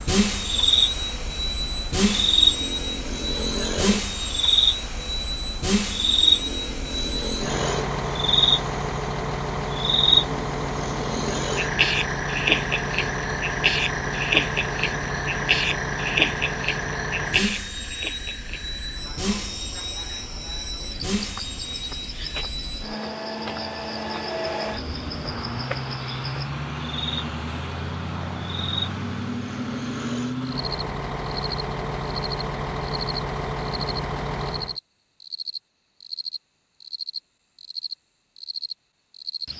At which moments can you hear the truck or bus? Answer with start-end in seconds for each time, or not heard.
0.0-34.8.